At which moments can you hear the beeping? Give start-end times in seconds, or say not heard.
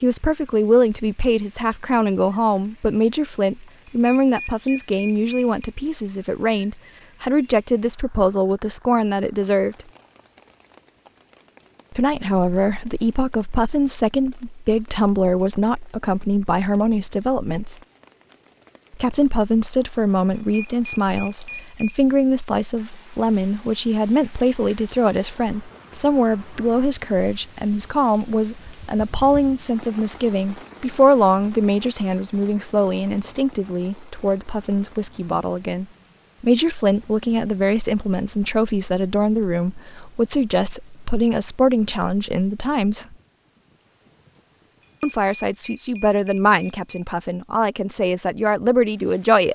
3.9-5.7, 20.4-22.0, 44.8-47.0.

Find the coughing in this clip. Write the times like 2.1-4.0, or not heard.
not heard.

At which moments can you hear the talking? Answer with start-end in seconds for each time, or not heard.
0.0-9.8, 11.9-17.8, 18.9-43.1, 45.0-49.5.